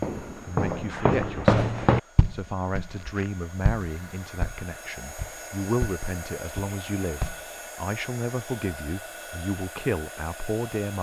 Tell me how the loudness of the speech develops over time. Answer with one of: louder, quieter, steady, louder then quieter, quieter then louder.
steady.